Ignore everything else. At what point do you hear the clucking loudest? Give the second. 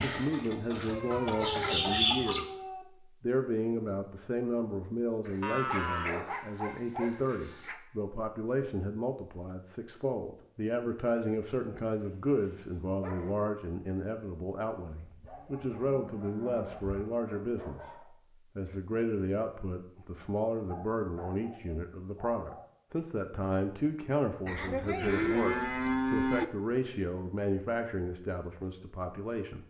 2 s.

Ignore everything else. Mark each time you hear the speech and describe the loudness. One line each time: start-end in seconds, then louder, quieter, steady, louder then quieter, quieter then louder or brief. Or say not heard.
0.0-29.6 steady.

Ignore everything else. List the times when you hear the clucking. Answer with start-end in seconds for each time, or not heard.
0.0-2.5.